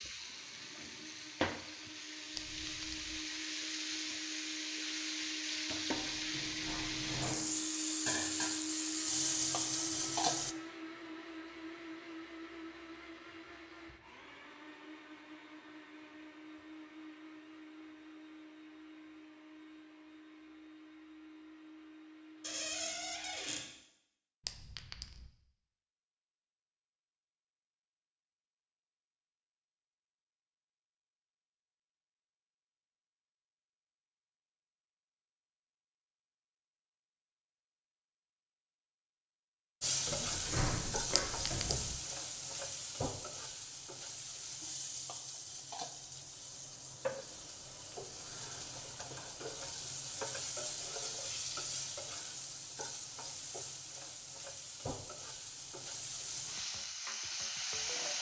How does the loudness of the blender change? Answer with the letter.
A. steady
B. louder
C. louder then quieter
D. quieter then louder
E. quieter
C.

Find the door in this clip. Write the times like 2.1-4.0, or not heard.
5.9-7.4, 22.4-23.6, 40.0-41.9.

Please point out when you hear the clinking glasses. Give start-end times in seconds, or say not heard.
2.4-3.1, 24.4-25.2, 41.1-41.9.